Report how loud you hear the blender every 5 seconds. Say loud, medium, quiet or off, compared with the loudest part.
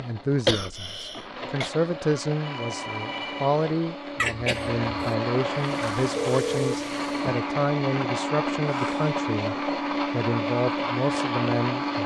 medium, loud, loud.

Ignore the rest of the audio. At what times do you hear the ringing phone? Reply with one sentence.
You can hear the ringing phone from 2.4 to 3.7 s and from 6.2 to 7.3 s.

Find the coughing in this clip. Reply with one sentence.
The coughing can be heard from 0.5 to 1.7 s, from 4.2 to 5.2 s and from 8.7 to 9.2 s.